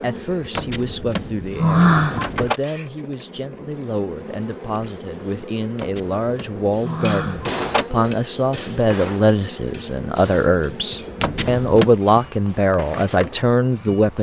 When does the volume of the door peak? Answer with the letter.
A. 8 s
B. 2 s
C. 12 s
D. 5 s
B.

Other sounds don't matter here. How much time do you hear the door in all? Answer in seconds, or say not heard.
5 s.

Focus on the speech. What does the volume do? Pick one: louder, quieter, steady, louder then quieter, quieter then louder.
louder.